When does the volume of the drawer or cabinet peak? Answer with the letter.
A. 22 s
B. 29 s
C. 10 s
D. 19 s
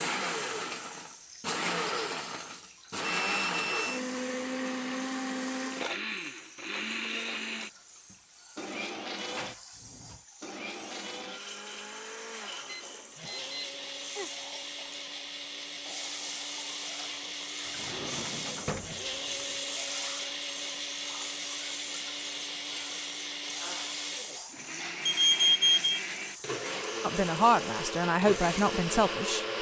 D.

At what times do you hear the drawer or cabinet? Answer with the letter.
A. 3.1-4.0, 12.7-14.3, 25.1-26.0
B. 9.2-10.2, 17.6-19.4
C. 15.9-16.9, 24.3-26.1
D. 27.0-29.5
B.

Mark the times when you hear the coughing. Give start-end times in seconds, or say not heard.
not heard.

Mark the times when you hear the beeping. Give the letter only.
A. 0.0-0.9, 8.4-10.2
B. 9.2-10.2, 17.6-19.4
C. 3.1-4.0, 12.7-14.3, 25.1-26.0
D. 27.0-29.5
C.